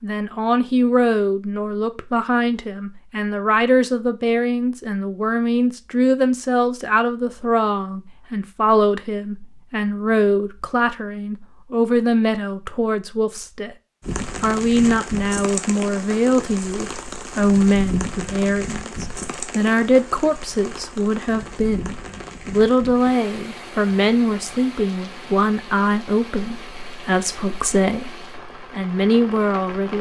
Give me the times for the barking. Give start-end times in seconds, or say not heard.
not heard.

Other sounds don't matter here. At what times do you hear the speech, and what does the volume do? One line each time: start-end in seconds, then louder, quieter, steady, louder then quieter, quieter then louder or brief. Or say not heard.
0.0-13.8 steady
14.4-29.9 steady.